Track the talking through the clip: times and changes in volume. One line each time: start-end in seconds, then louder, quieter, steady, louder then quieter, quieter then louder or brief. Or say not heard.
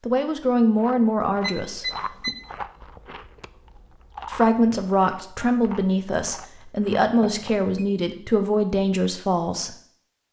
0.0-2.3 brief
4.2-9.8 steady.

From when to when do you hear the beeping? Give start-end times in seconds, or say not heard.
1.4-2.4, 7.2-7.8.